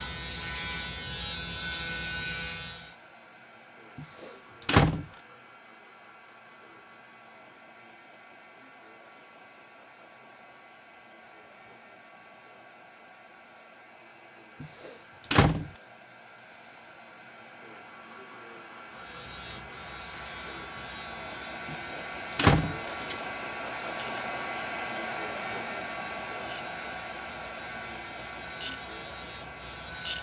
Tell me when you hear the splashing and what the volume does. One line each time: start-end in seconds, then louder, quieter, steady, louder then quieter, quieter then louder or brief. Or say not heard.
not heard.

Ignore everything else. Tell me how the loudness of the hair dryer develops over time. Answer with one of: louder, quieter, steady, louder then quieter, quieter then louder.
louder.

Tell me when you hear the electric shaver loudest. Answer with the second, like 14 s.
2 s.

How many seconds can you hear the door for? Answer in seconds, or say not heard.
4 s.